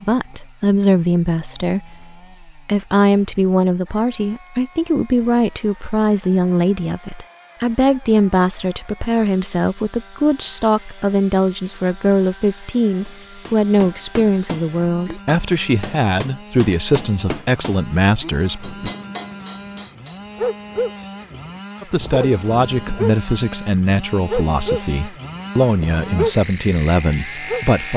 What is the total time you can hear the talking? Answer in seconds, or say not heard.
25 s.